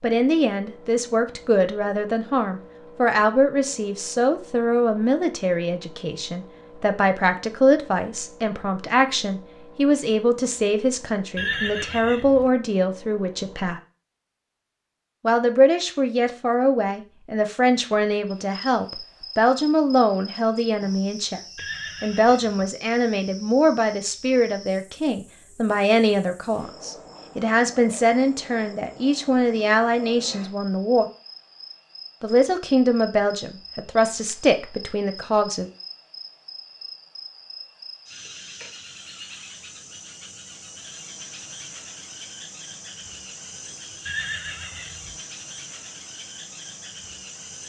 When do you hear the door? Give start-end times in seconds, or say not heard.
not heard.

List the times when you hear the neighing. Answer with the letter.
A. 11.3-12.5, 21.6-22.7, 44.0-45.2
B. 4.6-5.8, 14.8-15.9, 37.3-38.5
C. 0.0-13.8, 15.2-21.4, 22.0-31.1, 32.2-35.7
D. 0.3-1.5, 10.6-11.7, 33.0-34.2
A.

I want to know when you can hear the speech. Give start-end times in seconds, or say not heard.
0.0-13.8, 15.2-21.4, 22.0-31.1, 32.2-35.7.